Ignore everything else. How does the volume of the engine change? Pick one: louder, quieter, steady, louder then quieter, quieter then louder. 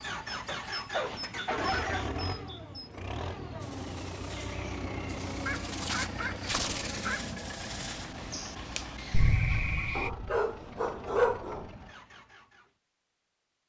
quieter.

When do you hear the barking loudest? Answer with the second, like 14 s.
11 s.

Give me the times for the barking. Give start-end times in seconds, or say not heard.
0.5-2.0, 5.5-7.3, 9.9-11.7.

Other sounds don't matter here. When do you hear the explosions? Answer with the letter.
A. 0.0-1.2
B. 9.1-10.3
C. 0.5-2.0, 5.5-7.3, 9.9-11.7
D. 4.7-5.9
B.